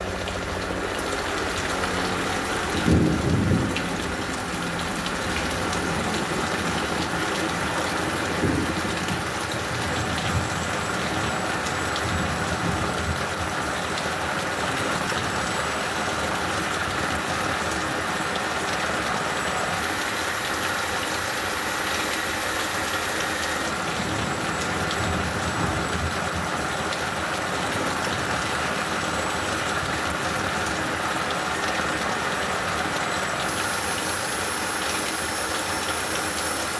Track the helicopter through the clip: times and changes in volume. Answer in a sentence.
You can hear the helicopter from 0.0 to 36.7 s, at a steady volume.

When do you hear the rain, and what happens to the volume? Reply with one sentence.
The rain can be heard from 0.0 to 36.7 s, at a steady volume.